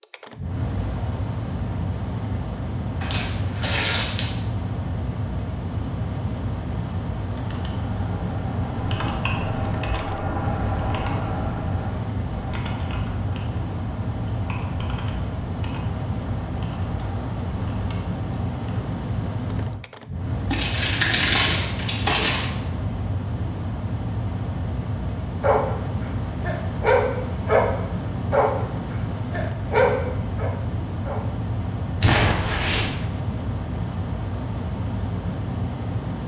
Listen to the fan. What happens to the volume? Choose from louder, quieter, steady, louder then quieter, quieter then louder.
steady.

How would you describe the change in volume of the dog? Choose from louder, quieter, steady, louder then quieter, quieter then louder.
louder then quieter.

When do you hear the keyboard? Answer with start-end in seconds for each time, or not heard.
7.3-18.9.